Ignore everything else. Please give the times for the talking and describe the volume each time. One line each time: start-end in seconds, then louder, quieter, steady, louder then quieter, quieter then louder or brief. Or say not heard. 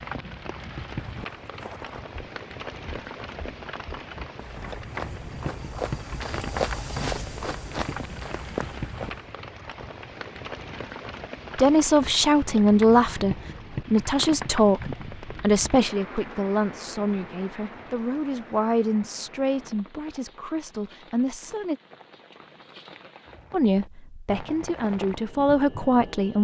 11.6-21.8 quieter
23.5-26.3 brief.